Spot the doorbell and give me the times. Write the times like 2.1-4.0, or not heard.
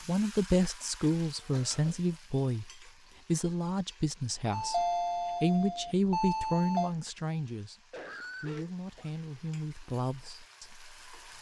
4.5-7.0.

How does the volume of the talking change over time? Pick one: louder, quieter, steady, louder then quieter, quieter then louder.
quieter.